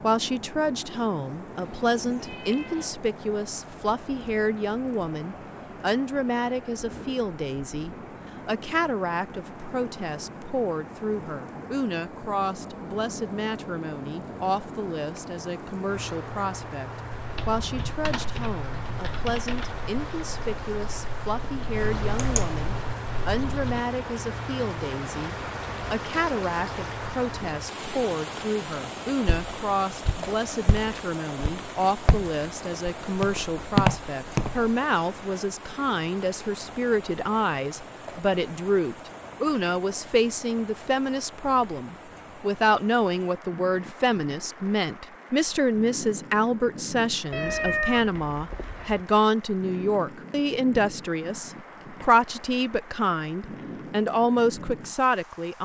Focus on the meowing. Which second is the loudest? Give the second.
48 s.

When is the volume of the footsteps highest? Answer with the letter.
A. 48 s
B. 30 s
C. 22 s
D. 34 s
D.